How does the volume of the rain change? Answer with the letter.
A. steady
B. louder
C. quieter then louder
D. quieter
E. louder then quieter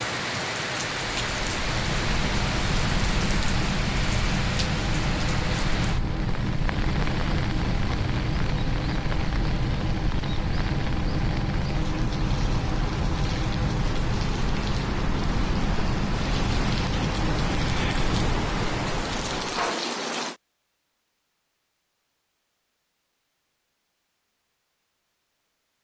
C.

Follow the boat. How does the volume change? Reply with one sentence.
The volume of the boat stays about the same.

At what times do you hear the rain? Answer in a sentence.
You can hear the rain from 0.0 to 20.4 s.